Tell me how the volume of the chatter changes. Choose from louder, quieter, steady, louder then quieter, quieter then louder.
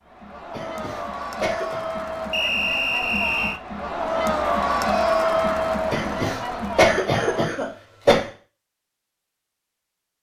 louder then quieter.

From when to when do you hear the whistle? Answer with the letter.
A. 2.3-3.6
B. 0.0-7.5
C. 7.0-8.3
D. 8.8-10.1
A.